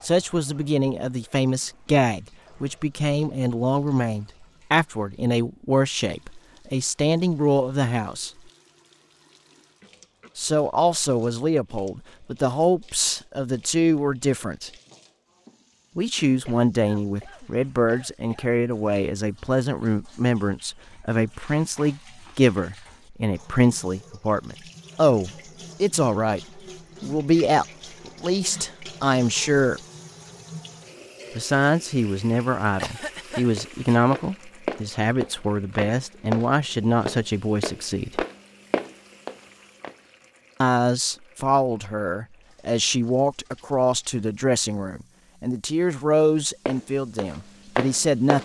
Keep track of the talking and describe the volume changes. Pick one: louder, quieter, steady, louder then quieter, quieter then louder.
steady.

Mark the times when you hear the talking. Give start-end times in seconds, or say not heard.
0.0-8.3, 10.3-14.7, 15.9-29.8, 31.4-38.2, 40.6-48.4.